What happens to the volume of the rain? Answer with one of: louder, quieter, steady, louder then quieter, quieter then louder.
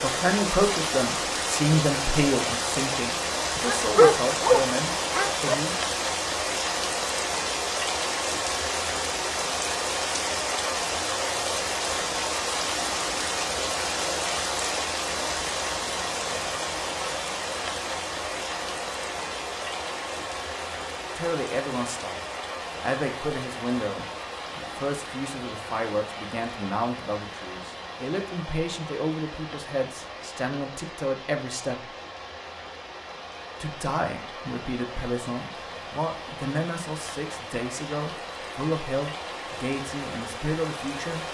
quieter.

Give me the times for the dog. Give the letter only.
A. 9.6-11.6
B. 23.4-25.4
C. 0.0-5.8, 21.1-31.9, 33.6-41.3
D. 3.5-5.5
D.